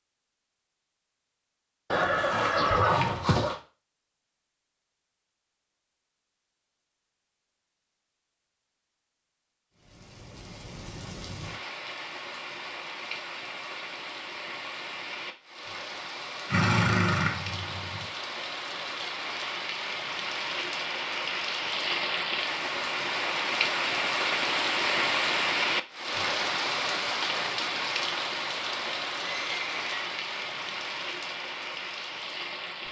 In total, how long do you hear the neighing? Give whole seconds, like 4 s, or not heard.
4 s.